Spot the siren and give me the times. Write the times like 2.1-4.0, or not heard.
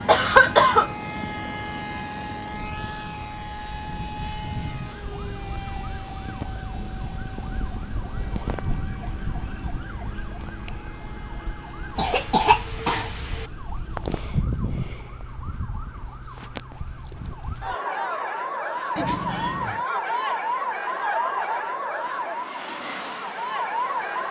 2.6-24.2.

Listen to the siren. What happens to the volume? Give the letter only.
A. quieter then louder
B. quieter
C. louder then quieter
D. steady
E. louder
E.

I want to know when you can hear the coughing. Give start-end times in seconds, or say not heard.
0.1-0.9, 11.9-13.4, 18.9-19.9.